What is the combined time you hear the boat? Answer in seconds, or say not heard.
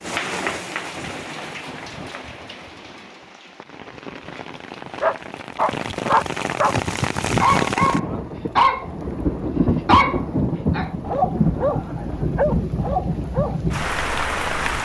not heard.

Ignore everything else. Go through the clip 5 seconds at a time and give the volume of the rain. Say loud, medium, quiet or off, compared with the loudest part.
medium, loud, loud.